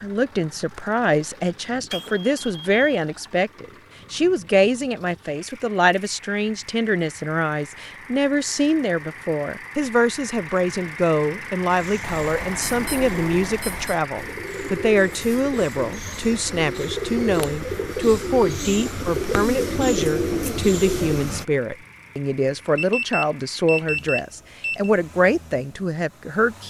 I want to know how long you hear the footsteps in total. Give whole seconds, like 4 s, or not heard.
not heard.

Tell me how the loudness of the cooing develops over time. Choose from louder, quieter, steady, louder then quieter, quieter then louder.
louder.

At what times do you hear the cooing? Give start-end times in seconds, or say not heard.
11.7-21.4.